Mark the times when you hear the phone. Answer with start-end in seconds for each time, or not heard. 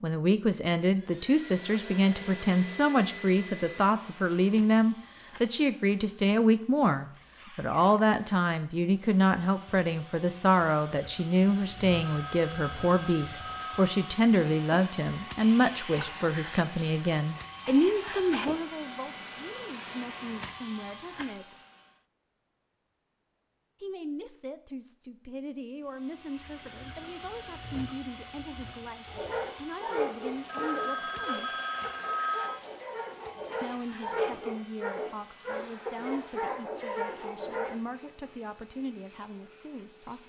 11.8-13.9, 30.4-32.6.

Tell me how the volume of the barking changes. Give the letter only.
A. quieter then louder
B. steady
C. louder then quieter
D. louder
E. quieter
A.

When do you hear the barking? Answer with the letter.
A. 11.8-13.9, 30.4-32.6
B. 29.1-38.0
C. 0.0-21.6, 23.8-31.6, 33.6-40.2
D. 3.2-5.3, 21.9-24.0
B.